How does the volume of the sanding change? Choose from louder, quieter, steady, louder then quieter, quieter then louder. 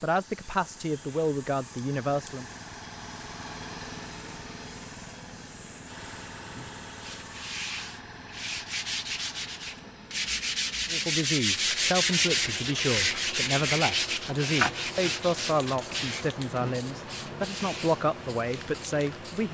louder then quieter.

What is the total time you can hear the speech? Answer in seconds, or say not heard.
11 s.